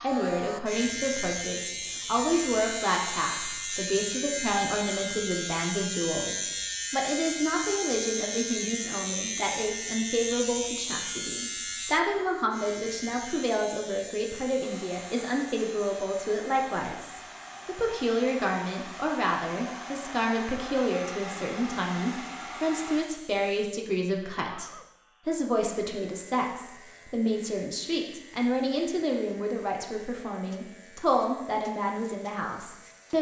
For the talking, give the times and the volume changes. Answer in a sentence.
You can hear the talking from 0.0 to 33.1 s, at a steady volume.